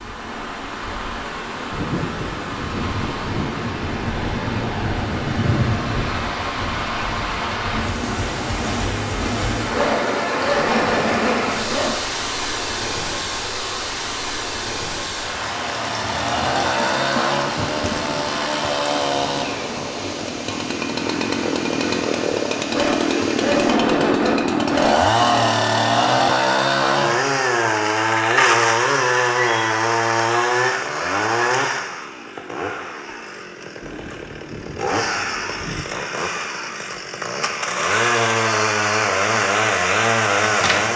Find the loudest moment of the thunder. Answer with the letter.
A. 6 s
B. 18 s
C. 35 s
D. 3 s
A.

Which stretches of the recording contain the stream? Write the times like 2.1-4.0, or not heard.
0.0-23.8.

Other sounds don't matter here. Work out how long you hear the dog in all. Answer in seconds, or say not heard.
5 s.